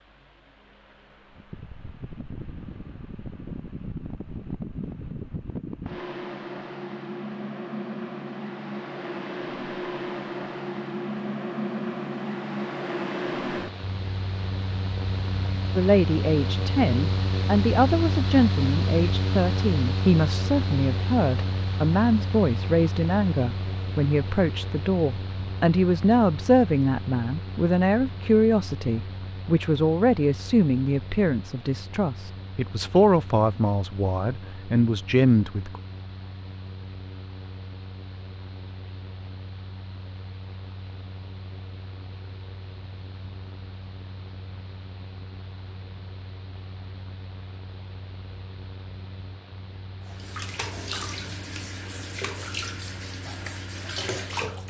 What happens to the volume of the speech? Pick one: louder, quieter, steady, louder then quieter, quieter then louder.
steady.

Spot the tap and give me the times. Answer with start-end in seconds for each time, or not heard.
50.0-54.6.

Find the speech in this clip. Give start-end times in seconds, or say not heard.
15.8-35.8.